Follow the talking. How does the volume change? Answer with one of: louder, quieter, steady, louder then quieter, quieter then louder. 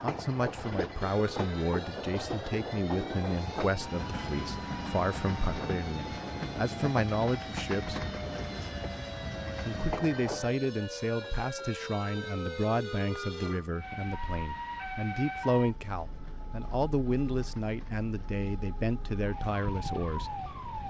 steady.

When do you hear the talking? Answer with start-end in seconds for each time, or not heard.
0.0-8.0, 9.7-20.4.